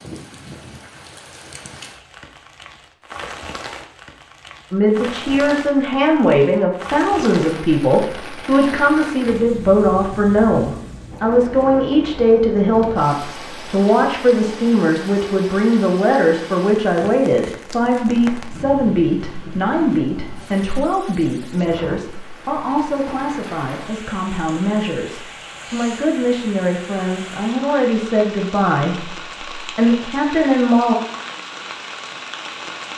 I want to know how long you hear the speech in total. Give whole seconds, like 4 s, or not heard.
26 s.